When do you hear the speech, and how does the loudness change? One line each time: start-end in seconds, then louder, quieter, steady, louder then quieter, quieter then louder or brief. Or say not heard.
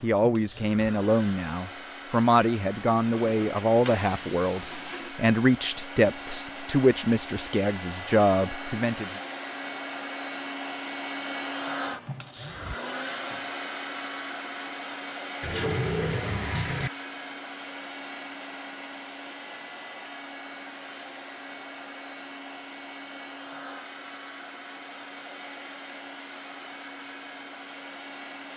0.0-9.1 steady.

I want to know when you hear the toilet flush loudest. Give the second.
16 s.